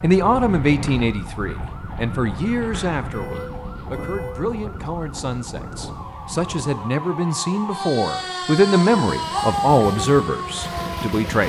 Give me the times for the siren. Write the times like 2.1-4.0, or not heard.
0.0-11.4.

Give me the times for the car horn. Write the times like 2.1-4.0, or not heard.
3.1-4.5.